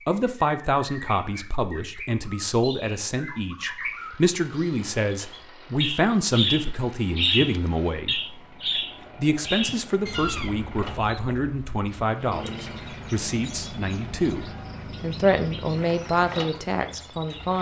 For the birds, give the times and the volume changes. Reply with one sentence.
You can hear the birds from 0.1 to 17.5 s, getting louder then quieter.